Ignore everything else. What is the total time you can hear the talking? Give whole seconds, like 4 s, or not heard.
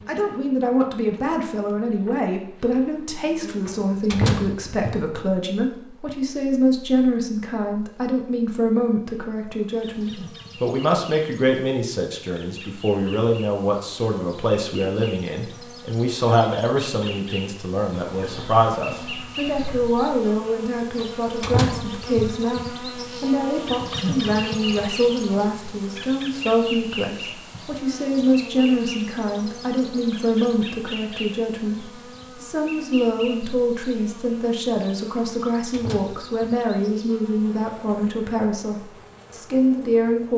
40 s.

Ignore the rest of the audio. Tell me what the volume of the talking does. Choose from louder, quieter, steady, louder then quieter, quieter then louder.
steady.